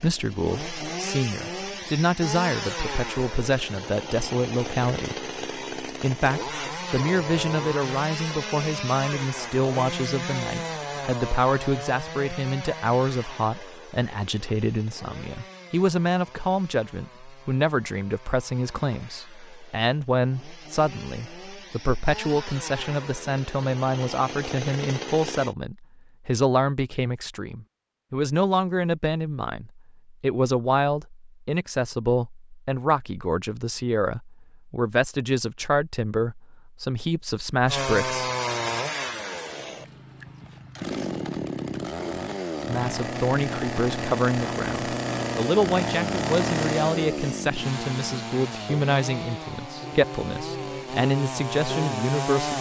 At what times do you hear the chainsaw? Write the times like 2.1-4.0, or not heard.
0.0-25.6, 37.6-52.5.